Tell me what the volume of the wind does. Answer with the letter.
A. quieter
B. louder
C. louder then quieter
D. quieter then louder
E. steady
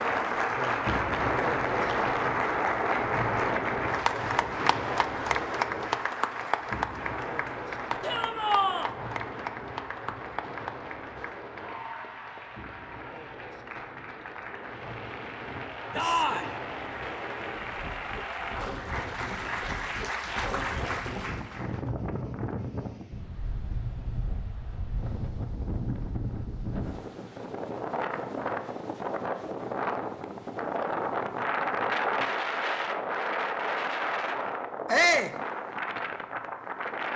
D.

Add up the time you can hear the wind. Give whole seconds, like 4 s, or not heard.
37 s.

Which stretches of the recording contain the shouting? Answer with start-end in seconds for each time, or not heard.
8.0-8.9, 15.9-16.6, 34.9-35.4.